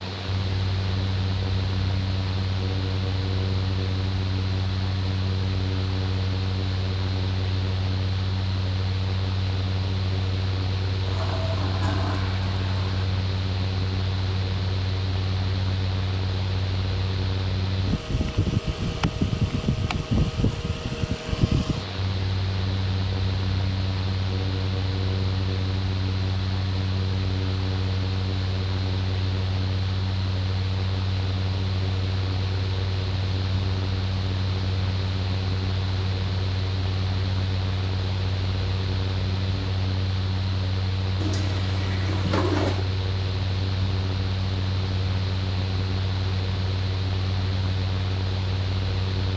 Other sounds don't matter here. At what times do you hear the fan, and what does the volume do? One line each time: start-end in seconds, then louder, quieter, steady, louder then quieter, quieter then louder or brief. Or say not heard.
0.0-49.3 steady.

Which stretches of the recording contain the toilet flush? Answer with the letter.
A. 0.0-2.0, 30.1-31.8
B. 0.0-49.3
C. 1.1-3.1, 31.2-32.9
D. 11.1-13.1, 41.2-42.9
D.